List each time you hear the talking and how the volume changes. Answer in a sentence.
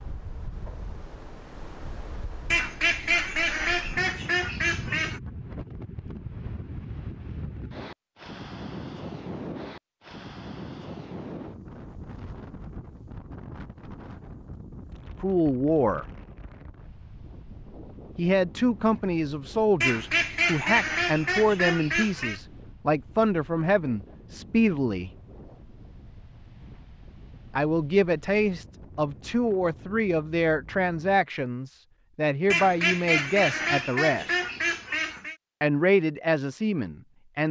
You can hear the talking briefly from 15.2 to 16.1 s; from 18.1 to 25.1 s, at a steady volume; from 27.6 to 34.4 s, at a steady volume; and briefly from 35.6 to 37.4 s.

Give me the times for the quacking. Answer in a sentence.
You can hear the quacking from 2.5 to 5.2 s, from 19.8 to 22.4 s and from 32.5 to 35.4 s.